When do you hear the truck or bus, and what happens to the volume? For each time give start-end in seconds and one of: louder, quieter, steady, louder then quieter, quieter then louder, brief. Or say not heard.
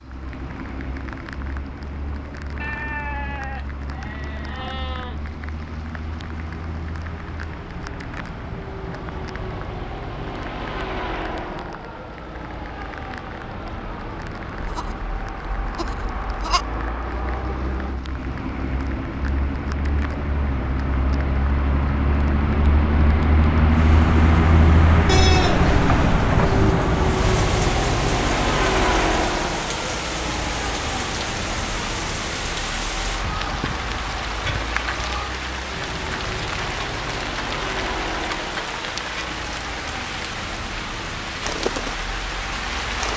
0.0-43.1 louder then quieter.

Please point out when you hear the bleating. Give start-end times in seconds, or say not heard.
2.5-5.2, 14.6-16.6, 25.1-26.8, 33.2-35.3.